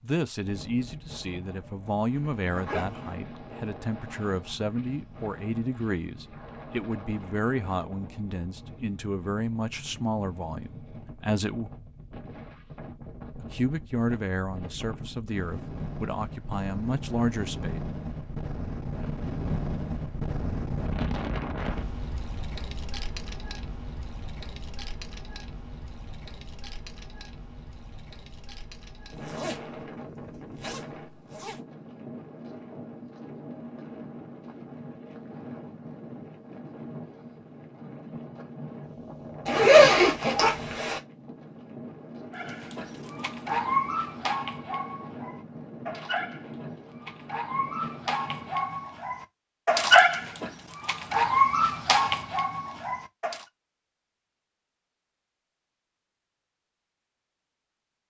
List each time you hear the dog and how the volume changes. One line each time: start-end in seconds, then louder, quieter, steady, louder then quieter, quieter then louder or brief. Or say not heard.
42.4-53.5 quieter then louder.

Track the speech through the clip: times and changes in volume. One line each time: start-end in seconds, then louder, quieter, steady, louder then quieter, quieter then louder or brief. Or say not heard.
0.0-11.7 steady
13.4-17.8 quieter then louder.